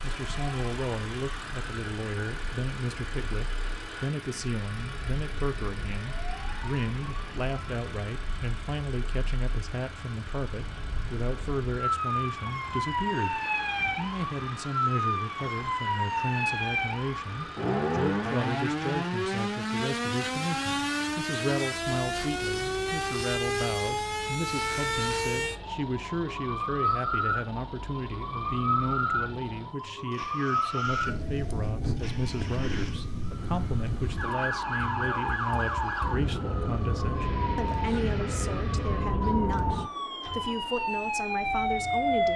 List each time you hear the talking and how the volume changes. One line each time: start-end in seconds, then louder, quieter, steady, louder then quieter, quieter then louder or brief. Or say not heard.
0.0-42.3 steady.